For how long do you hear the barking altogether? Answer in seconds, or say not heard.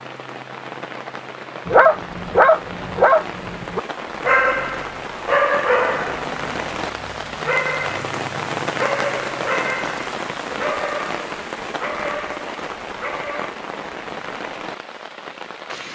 12 s.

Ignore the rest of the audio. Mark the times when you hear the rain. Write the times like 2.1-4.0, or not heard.
0.0-15.9.